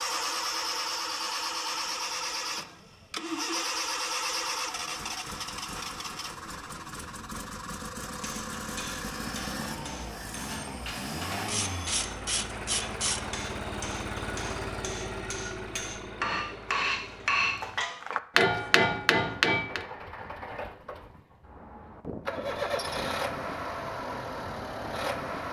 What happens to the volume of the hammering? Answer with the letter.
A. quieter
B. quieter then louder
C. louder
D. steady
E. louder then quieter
C.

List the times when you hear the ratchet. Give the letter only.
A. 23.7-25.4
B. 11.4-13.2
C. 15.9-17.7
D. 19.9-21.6
B.